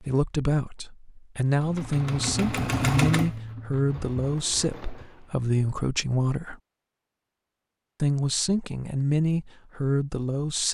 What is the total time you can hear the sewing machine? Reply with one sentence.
The sewing machine can be heard for 4 seconds in total.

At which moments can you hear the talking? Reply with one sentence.
You can hear the talking from 0.0 to 6.5 s and from 8.0 to 10.7 s.